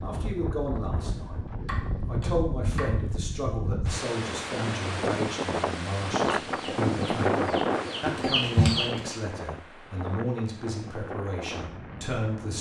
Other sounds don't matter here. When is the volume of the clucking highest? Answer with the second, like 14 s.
9 s.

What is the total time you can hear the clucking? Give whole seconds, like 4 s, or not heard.
3 s.